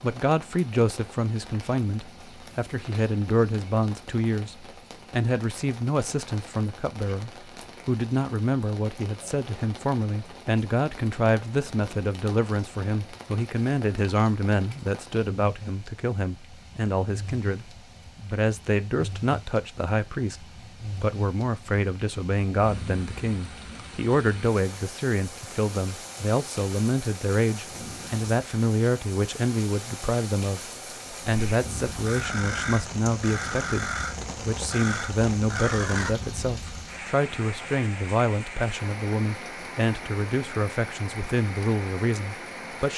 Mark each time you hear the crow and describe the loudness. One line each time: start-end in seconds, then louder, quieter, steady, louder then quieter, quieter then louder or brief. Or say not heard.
31.3-36.9 steady.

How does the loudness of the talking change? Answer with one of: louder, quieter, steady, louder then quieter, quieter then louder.
steady.